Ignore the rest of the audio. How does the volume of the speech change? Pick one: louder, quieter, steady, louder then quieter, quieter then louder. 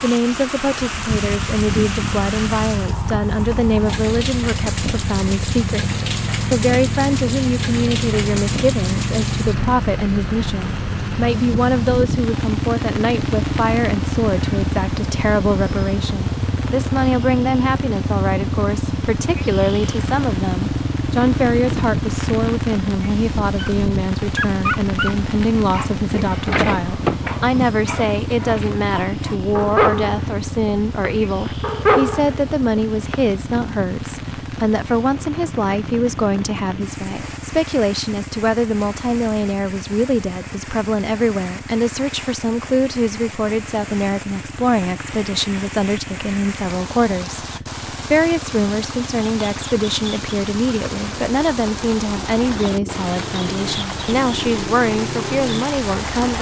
steady.